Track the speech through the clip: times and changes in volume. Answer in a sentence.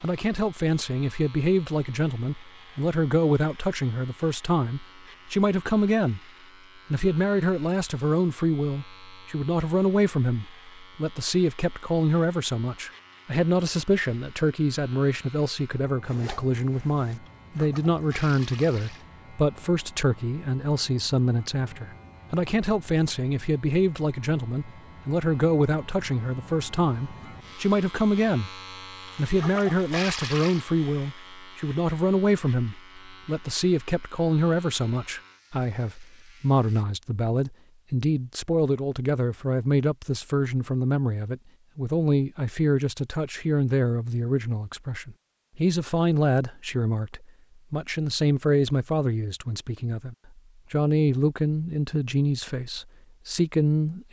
The speech can be heard from 0.0 to 6.2 s, at a steady volume; from 6.9 to 28.5 s, at a steady volume; and from 29.1 to 54.0 s, at a steady volume.